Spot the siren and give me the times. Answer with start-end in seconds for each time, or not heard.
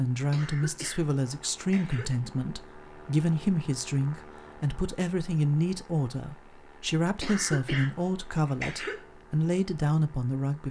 not heard.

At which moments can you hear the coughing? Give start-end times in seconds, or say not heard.
0.3-2.1, 7.2-9.1.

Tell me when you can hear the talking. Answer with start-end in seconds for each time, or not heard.
0.0-10.6.